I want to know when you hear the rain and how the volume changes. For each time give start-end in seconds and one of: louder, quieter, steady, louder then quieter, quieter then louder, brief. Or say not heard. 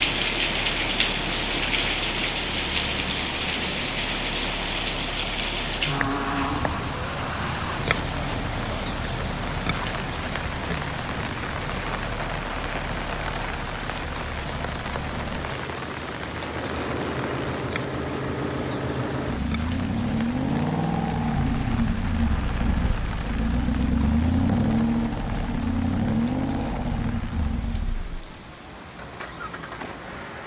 0.0-30.4 quieter.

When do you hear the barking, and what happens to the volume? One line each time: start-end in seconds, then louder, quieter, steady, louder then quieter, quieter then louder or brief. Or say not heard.
not heard.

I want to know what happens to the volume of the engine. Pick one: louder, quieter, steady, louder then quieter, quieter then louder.
louder.